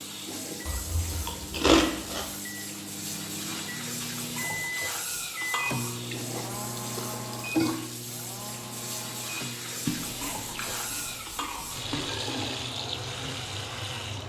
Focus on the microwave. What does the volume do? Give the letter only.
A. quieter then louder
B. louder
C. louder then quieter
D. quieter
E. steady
C.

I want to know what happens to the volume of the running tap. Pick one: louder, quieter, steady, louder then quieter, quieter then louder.
steady.